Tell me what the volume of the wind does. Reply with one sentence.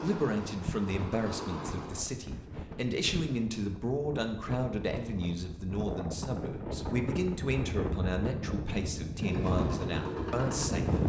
The volume of the wind goes up.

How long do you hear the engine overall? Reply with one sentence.
The engine can be heard for 4 seconds in total.